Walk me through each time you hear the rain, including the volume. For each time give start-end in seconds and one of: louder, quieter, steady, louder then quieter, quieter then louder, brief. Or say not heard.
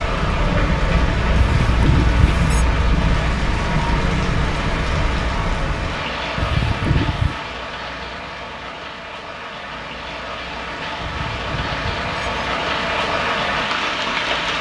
0.0-14.5 quieter then louder.